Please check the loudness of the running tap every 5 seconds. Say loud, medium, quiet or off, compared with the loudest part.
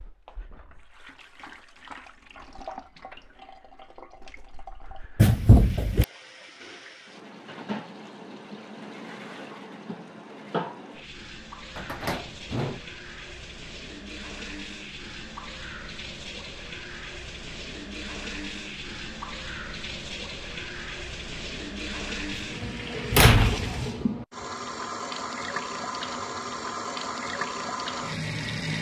quiet, medium, medium, medium, loud, loud.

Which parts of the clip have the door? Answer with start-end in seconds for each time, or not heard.
5.2-6.0, 11.8-12.8, 22.6-23.9.